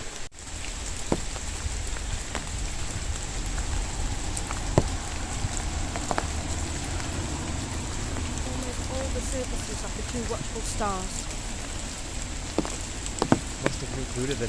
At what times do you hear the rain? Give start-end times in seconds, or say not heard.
0.0-14.4.